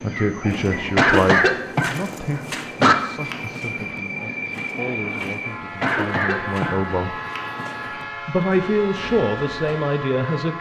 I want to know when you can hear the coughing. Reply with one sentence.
The coughing can be heard from 0.9 to 3.0 s and from 5.8 to 7.7 s.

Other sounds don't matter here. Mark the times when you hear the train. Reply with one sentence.
You can hear the train from 0.0 to 10.5 s.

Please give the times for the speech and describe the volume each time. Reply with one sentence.
You can hear the speech from 0.0 to 7.2 s, getting quieter then louder; and briefly from 8.2 to 10.5 s.